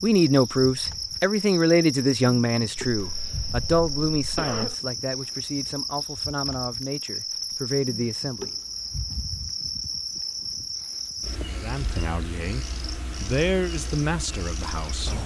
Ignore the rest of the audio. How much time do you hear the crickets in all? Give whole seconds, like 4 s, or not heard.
15 s.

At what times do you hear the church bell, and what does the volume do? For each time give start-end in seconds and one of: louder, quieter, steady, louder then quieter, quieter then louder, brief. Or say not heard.
not heard.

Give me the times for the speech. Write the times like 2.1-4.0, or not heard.
0.0-8.5, 11.5-15.2.